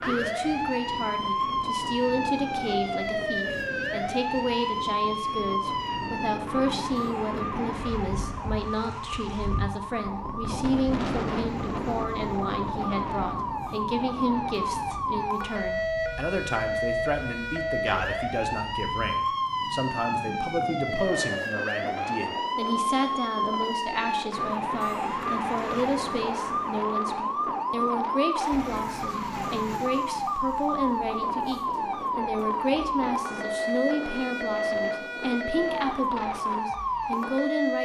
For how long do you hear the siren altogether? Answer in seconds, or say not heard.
38 s.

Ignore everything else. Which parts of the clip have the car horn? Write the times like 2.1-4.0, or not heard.
not heard.